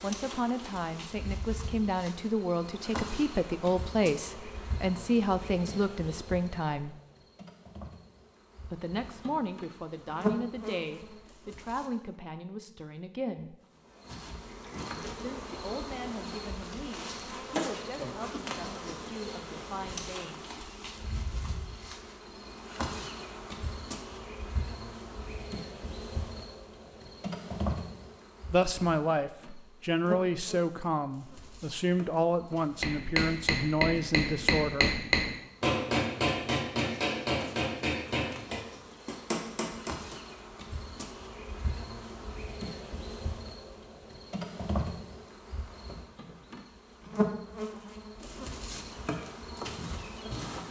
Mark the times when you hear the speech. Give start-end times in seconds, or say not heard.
0.0-7.0, 8.7-13.6, 15.2-20.6, 28.5-35.0.